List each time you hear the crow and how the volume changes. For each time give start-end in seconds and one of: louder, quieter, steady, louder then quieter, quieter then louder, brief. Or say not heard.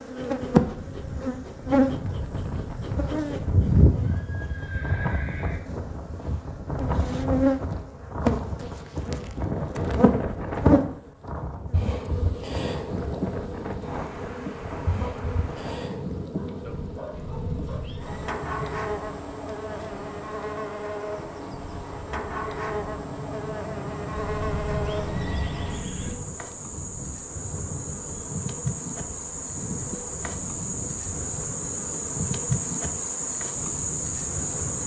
not heard.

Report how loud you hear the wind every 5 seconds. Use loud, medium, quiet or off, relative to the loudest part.
medium, loud, loud, medium, medium, medium, medium.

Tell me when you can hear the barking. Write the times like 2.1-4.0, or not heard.
16.4-17.8.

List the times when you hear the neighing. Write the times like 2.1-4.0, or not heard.
3.6-5.5, 17.1-18.3, 24.1-26.1.